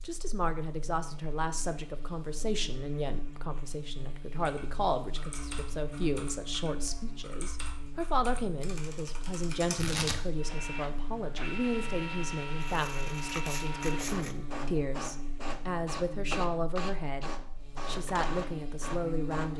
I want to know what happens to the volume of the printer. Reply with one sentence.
The loudness of the printer stays about the same.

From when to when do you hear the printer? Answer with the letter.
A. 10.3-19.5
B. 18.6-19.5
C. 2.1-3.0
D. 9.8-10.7
A.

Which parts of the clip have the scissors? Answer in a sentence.
The scissors can be heard from 12.6 to 14.3 s.